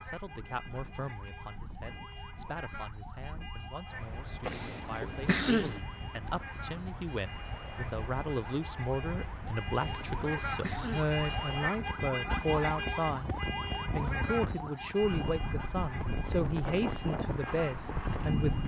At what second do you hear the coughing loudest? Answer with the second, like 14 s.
5 s.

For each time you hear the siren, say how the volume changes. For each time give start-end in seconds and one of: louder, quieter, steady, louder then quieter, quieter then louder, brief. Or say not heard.
0.0-18.6 louder then quieter.